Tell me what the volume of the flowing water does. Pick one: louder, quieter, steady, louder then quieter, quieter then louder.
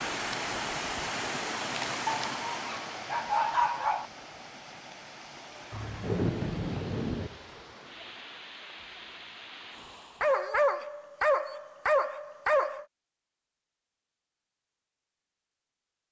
quieter.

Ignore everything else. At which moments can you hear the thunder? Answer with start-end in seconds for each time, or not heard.
5.7-7.3.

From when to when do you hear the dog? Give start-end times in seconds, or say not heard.
2.0-4.0, 10.2-12.8.